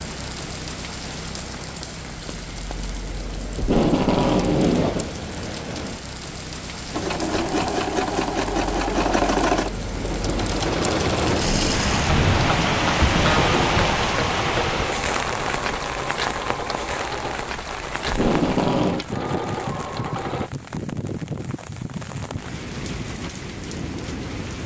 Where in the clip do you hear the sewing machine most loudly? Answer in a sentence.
The loudest moment of the sewing machine is at 9 seconds.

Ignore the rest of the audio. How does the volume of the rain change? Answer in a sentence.
The volume of the rain goes up, then down.